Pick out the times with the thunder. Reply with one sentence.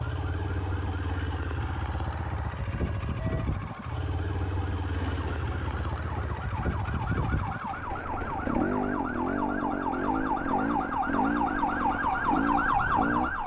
You can hear the thunder from 4.9 to 6.4 s.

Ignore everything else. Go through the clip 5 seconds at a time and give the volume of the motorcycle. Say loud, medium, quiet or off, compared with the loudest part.
medium, loud, loud.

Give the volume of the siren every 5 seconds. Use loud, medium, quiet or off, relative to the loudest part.
quiet, medium, loud.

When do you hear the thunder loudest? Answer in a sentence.
The volume of the thunder peaks at 5 seconds.